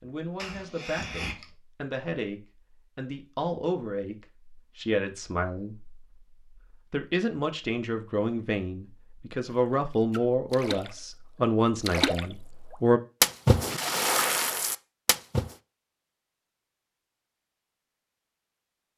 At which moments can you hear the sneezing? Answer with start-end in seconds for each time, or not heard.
0.3-1.5.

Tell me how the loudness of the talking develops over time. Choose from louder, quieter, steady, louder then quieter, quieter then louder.
louder.